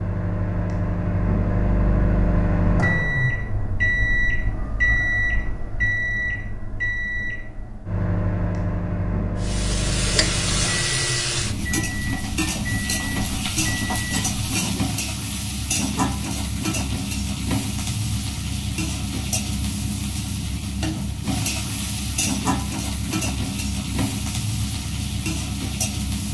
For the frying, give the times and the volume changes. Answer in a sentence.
The frying can be heard from 9.4 to 26.3 s, at a steady volume.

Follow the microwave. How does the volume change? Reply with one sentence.
The loudness of the microwave goes down.